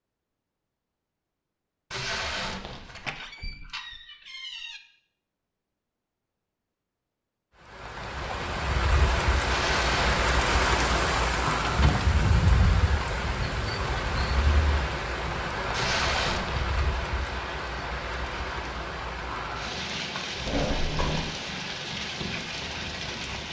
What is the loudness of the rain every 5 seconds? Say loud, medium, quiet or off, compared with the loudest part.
off, loud, loud, medium, medium.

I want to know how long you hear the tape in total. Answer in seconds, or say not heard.
3 s.